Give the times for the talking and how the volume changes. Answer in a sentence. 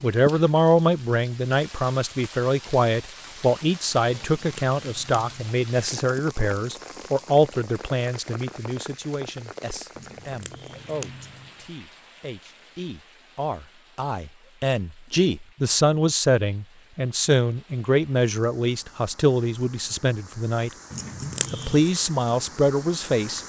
You can hear the talking from 0.0 to 23.4 s, getting quieter then louder.